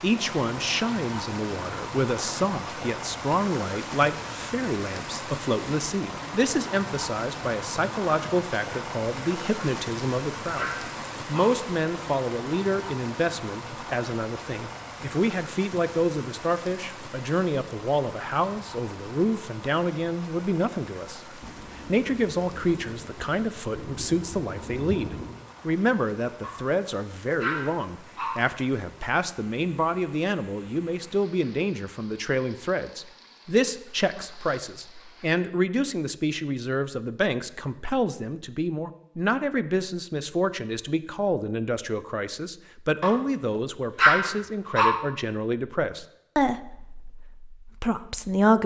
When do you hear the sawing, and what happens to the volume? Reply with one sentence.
You can't hear the sawing here.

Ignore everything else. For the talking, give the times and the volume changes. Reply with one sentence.
You can hear the talking from 0.0 to 21.2 s, at a steady volume; and from 21.9 to 48.6 s, at a steady volume.